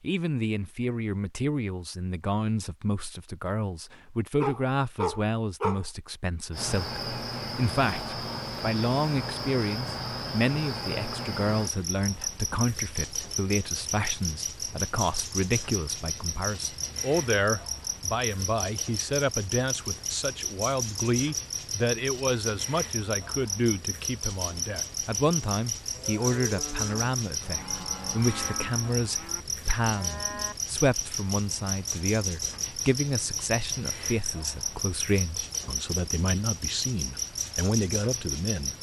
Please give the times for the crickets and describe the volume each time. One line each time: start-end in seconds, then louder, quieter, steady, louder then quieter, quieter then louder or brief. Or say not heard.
6.5-38.7 steady.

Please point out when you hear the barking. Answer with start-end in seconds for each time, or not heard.
4.4-5.8.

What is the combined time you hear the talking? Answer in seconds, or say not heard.
39 s.